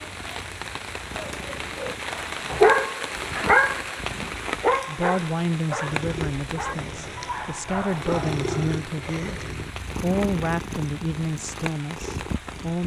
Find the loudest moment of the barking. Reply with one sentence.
The volume of the barking peaks at 3 seconds.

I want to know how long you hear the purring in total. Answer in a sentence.
You can hear the purring for 13 seconds altogether.